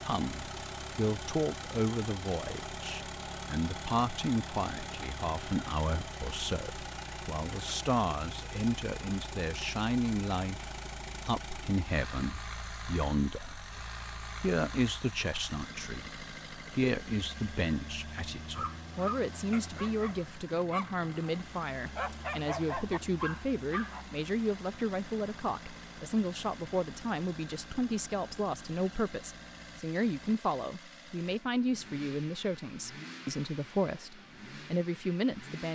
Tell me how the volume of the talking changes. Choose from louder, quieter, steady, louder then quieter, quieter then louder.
steady.